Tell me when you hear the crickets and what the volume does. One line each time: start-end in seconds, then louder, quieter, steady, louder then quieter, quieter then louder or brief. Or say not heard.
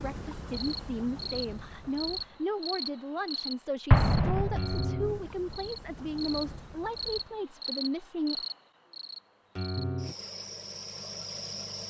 0.0-11.8 steady.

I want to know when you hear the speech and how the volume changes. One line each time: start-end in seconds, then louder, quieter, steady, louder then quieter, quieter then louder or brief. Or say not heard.
0.0-8.4 steady.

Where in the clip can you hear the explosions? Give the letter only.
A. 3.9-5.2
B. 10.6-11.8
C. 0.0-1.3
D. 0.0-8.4
A.